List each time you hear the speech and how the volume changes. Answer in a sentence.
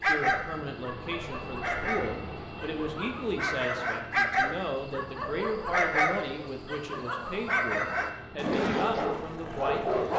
The speech can be heard from 0.0 to 10.1 s, at a steady volume.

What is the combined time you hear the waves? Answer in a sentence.
You can't hear the waves here.